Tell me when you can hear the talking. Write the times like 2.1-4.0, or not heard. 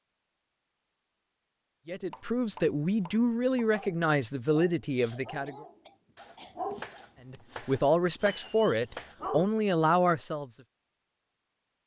1.9-5.7, 7.2-10.6.